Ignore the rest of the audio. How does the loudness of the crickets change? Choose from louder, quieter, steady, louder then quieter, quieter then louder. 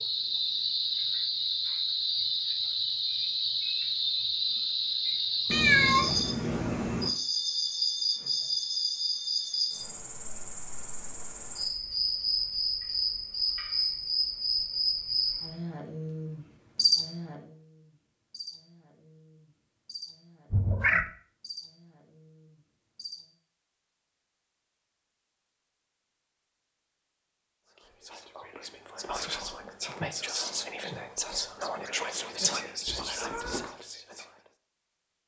quieter.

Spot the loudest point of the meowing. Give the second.
6 s.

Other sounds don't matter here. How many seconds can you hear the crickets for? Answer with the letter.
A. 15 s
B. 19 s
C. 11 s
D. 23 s
D.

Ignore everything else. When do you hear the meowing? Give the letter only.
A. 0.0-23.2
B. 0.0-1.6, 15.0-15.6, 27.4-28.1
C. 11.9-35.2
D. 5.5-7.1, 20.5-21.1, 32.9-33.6
D.